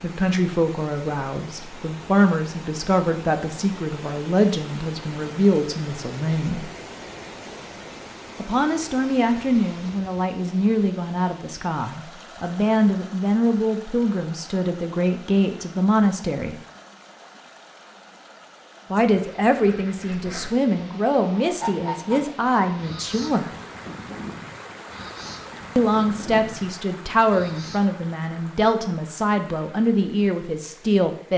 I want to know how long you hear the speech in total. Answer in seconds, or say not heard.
25 s.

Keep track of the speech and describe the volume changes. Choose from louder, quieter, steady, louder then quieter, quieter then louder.
steady.